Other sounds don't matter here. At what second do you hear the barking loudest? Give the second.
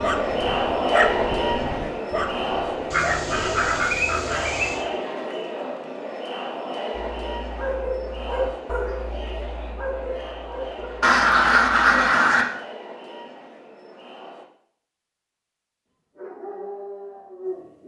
1 s.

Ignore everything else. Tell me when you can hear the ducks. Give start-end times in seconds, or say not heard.
2.9-4.8, 11.0-12.4.